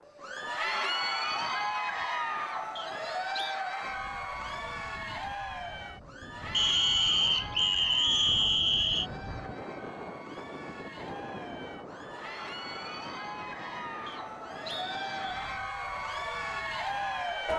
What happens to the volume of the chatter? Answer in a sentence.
The volume of the chatter goes down, then up.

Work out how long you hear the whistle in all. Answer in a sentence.
You can hear the whistle for 5 seconds altogether.